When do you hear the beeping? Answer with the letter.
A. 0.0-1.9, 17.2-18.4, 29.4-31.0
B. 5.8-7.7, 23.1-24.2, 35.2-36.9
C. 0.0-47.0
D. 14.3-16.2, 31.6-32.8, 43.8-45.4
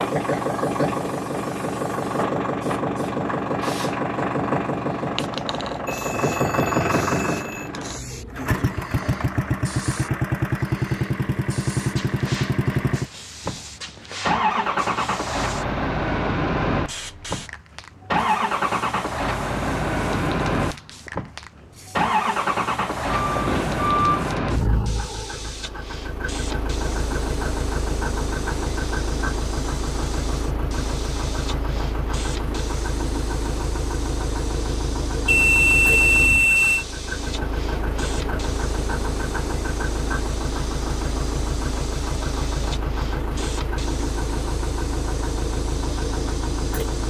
B.